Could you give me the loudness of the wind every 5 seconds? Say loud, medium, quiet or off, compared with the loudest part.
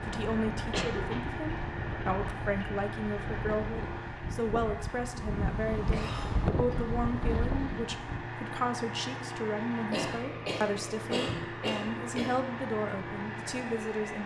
medium, loud, off.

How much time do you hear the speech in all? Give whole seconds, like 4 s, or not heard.
14 s.